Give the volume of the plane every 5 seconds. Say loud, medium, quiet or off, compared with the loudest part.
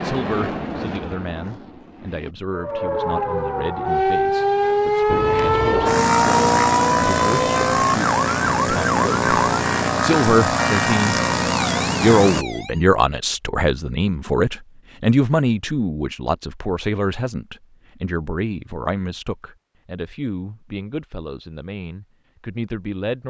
medium, loud, loud, off, off.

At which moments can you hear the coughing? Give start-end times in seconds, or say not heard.
not heard.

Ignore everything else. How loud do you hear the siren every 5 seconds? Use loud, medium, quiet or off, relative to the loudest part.
loud, loud, medium, off, off.